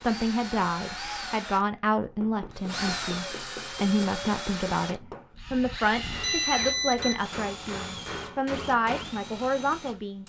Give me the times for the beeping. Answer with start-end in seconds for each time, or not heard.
6.1-7.2.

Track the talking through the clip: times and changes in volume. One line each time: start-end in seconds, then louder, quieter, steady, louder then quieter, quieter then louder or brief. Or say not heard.
0.0-10.2 steady.